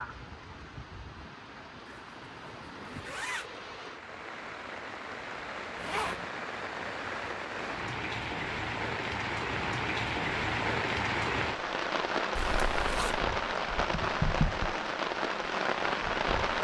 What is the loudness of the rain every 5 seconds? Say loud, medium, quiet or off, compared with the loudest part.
quiet, medium, loud, loud.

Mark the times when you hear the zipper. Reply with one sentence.
You can hear the zipper from 1.9 to 3.5 s, from 5.8 to 6.2 s and from 12.3 to 13.2 s.